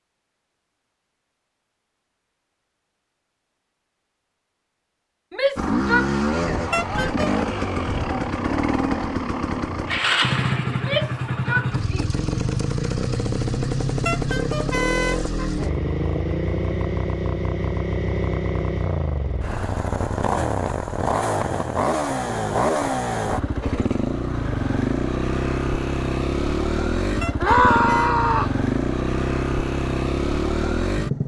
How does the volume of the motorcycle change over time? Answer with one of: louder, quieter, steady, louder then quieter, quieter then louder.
steady.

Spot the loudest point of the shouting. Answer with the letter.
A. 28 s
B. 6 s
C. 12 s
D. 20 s
A.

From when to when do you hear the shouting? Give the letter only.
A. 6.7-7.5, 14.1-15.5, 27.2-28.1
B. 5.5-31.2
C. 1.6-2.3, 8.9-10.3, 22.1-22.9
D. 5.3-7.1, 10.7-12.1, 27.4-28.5
D.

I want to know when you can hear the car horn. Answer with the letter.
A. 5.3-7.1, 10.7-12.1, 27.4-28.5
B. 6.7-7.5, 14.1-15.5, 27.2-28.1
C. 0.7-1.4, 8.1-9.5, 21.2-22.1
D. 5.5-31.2
B.